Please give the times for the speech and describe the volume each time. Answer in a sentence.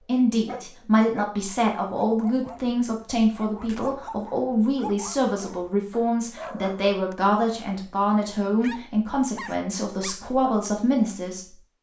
The speech can be heard from 0.1 to 11.6 s, at a steady volume.